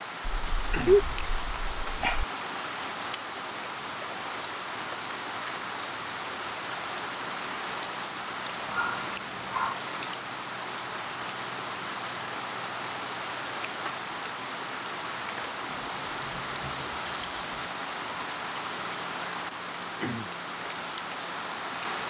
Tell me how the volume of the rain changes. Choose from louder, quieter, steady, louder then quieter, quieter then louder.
steady.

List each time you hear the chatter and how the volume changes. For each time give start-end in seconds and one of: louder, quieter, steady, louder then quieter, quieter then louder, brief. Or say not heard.
not heard.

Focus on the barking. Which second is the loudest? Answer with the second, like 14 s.
1 s.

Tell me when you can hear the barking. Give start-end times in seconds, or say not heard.
0.2-2.2, 8.7-9.8, 15.7-17.7.